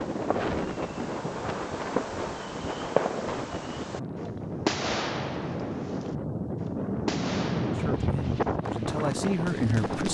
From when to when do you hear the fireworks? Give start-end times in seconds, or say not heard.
0.0-4.0, 4.7-6.2, 7.0-10.0.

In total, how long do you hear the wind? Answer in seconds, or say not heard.
10 s.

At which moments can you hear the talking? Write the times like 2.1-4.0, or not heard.
7.8-10.0.